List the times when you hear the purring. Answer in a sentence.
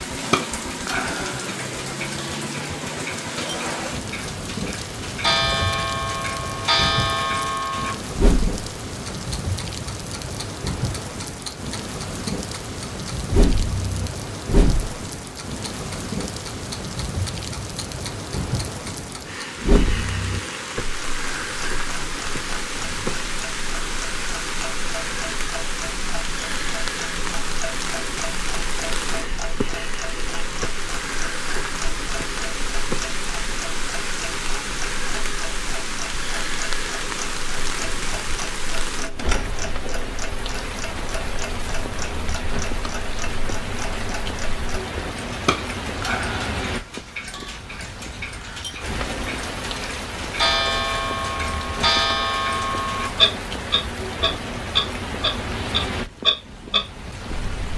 You can't hear the purring here.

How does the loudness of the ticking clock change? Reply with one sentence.
The loudness of the ticking clock goes down, then up.